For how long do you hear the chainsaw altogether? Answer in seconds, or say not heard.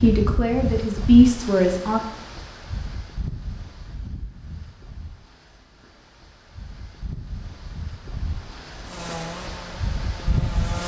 2 s.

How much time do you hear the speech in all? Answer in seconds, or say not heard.
2 s.